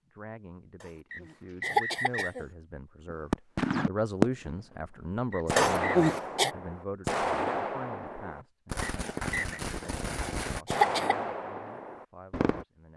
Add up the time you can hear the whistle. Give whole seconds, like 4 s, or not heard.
3 s.